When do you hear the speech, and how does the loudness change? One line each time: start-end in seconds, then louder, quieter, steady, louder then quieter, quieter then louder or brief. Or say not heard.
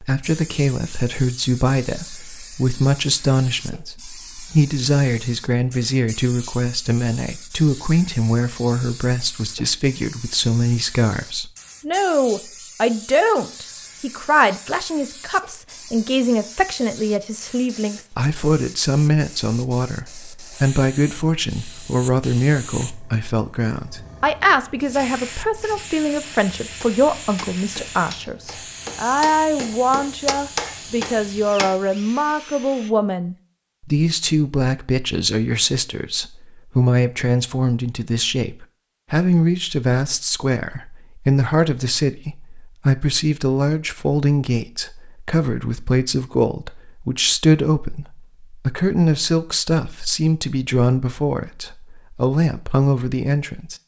0.0-53.8 steady.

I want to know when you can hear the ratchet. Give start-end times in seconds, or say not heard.
not heard.